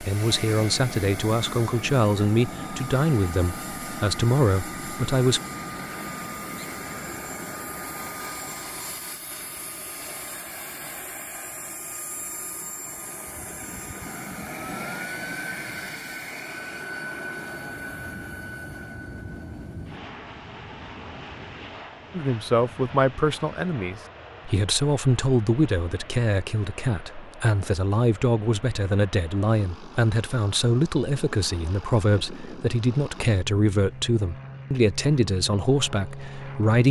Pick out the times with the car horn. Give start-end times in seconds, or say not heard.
not heard.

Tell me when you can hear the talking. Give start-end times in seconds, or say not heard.
0.0-5.4, 22.1-36.8.